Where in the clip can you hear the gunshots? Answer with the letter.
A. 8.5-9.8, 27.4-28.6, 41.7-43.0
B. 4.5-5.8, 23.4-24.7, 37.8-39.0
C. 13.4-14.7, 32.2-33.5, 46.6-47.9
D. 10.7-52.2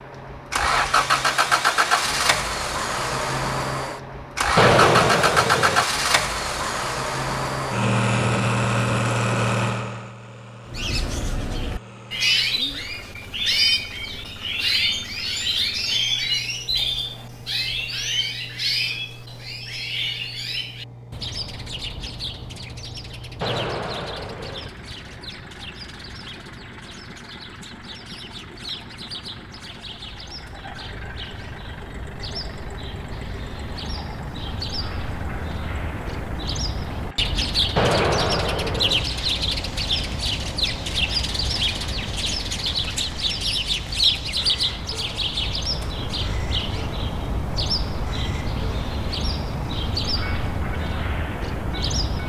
B.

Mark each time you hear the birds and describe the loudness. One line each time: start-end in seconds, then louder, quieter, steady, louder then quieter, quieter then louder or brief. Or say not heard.
10.7-52.2 quieter then louder.